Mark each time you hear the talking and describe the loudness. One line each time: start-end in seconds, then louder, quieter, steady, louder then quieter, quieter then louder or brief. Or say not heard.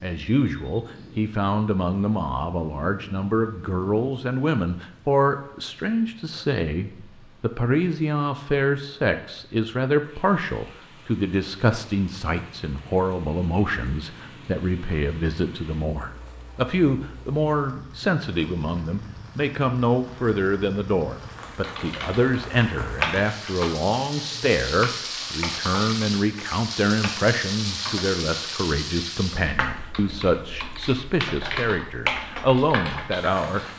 0.0-33.7 steady.